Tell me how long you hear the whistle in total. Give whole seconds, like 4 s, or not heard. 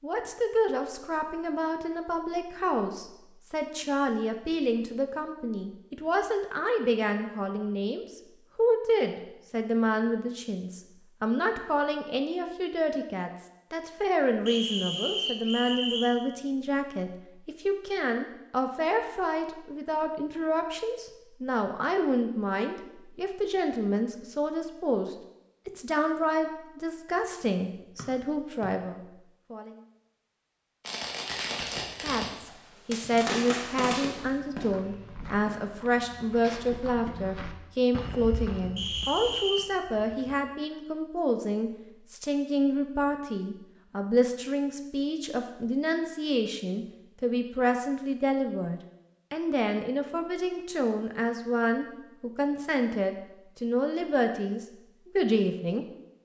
3 s.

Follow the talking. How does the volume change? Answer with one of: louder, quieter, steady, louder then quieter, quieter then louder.
steady.